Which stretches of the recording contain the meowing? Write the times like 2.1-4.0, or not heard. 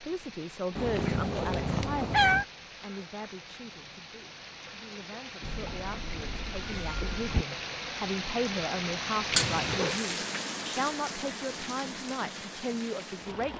0.8-2.5, 5.4-7.5, 9.3-9.9.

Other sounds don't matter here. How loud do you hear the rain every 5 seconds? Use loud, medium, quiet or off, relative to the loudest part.
medium, loud, loud.